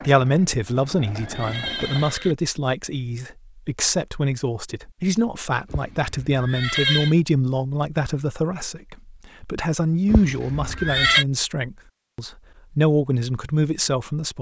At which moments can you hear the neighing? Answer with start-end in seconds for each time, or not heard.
0.5-2.4, 5.7-7.2, 10.1-11.2.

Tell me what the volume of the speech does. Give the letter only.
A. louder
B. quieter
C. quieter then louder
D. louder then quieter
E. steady
E.